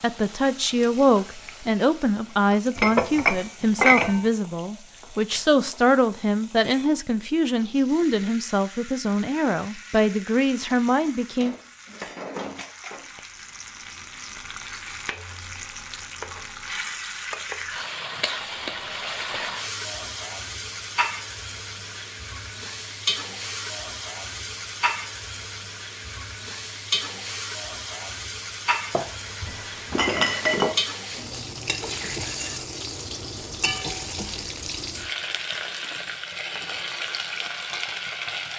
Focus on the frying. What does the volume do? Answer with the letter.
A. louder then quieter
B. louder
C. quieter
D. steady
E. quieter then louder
B.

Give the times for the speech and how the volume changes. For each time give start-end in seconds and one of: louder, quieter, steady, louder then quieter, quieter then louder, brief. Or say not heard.
0.0-11.6 steady.